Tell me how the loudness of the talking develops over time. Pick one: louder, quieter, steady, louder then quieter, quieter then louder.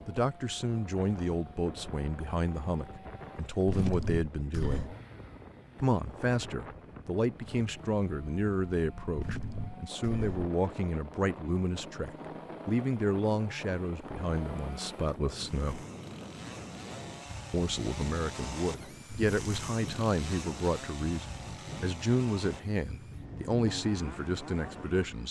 steady.